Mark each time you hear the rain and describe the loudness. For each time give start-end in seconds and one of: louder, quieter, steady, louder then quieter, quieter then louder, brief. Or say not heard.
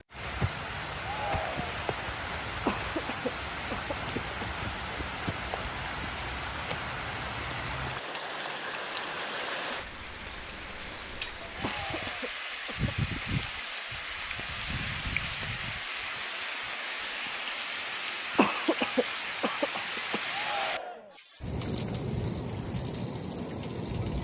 0.0-24.2 steady.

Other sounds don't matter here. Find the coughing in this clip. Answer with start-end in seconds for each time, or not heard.
2.6-4.5, 11.6-13.4, 18.4-20.2.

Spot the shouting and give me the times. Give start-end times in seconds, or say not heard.
1.0-1.8, 11.6-12.4, 20.2-21.2.